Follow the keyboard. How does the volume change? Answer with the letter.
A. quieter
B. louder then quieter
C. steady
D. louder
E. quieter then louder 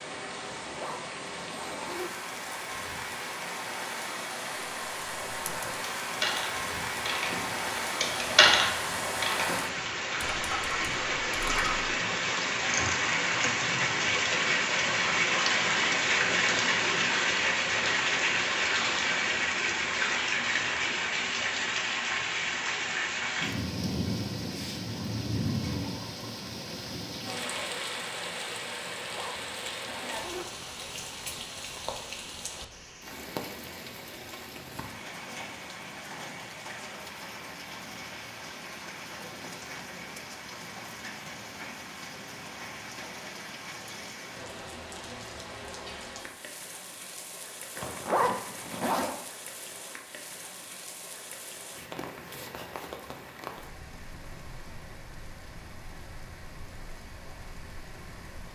B.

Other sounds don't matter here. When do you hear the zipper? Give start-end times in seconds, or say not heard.
0.7-2.1, 28.9-30.5, 47.8-49.1.